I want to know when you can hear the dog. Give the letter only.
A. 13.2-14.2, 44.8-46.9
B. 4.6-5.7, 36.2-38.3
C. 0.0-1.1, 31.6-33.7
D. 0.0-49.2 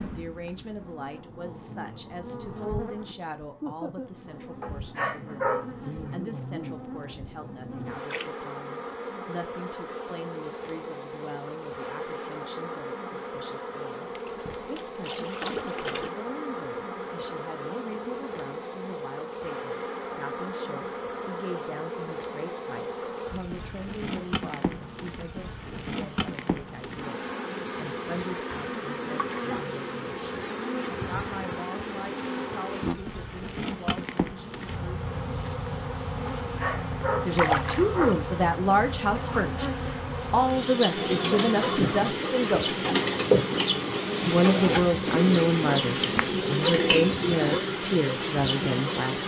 B.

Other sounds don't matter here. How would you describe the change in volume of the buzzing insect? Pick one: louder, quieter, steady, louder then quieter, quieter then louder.
louder.